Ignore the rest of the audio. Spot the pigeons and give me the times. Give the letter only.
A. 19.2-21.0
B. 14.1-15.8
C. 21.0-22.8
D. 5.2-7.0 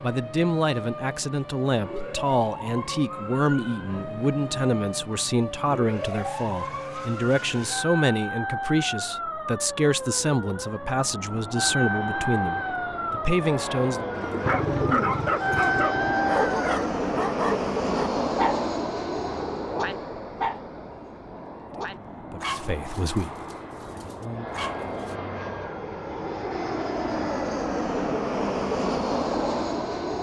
B.